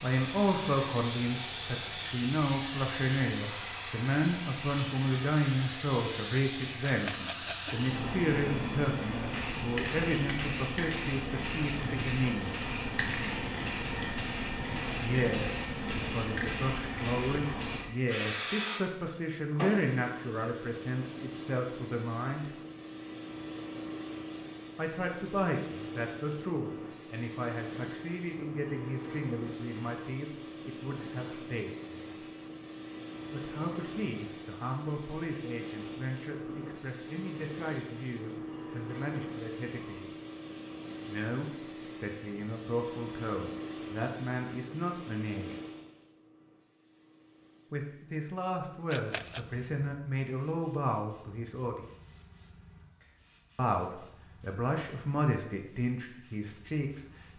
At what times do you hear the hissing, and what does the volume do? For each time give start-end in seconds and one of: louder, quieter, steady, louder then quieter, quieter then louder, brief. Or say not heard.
0.0-57.3 quieter.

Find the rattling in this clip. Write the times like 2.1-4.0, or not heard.
6.8-7.8, 48.9-49.5.